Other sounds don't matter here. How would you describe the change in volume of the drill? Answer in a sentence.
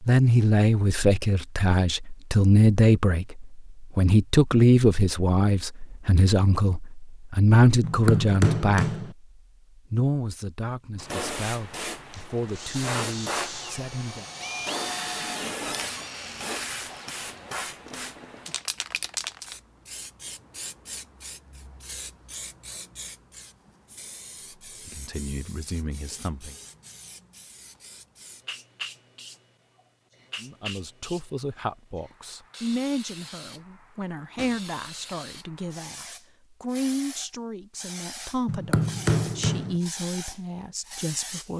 The loudness of the drill goes down.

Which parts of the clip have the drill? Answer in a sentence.
You can hear the drill from 12.1 to 18.6 s.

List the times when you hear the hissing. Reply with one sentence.
You can hear the hissing from 10.9 to 41.5 s.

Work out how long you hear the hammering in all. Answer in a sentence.
You can hear the hammering for 3 seconds altogether.